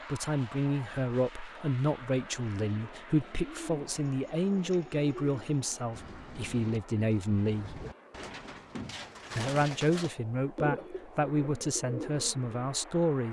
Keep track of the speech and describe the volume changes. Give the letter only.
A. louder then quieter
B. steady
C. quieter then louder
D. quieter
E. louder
B.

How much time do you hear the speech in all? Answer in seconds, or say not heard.
12 s.